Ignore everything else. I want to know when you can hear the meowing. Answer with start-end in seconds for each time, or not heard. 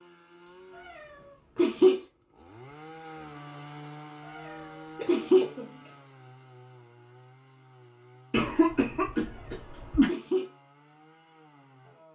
0.8-2.0, 4.2-5.5, 9.2-10.4.